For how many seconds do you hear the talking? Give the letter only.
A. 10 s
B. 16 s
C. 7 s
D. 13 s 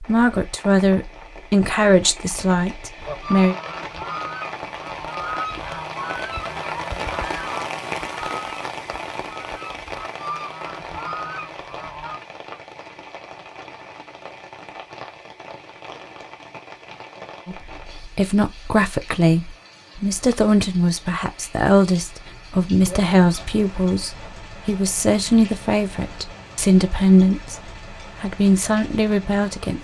B.